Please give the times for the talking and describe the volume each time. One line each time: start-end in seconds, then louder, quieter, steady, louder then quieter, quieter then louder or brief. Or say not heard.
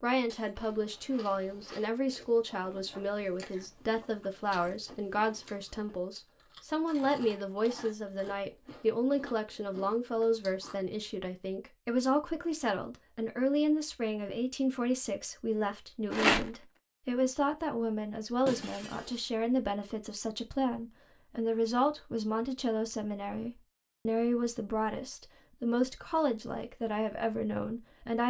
0.0-28.2 steady.